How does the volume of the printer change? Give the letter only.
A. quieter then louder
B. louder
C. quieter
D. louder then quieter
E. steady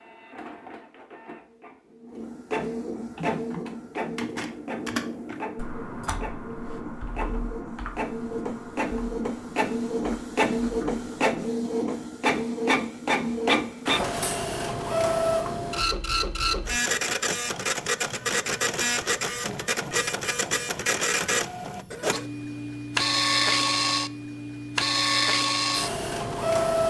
B.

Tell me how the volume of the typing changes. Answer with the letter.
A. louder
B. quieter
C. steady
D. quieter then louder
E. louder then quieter
B.